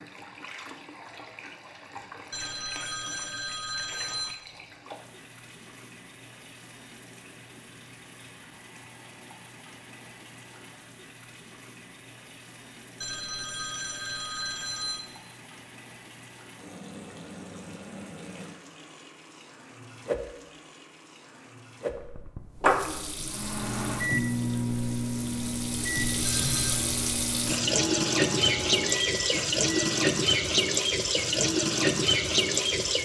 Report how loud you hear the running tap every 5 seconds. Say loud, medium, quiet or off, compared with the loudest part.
quiet, quiet, quiet, quiet, medium, loud, loud.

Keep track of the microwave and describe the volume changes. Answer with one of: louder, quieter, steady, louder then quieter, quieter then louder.
quieter.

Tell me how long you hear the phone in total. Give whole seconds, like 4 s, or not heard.
5 s.